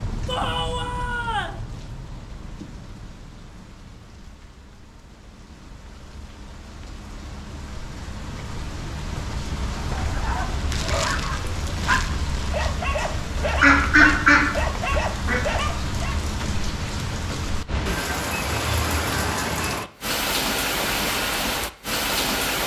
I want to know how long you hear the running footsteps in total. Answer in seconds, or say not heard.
not heard.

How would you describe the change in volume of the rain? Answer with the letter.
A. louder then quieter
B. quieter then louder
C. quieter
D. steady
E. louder
E.